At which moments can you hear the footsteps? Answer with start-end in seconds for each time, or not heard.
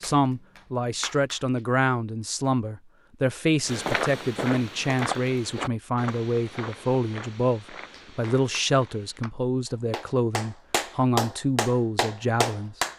3.6-9.2.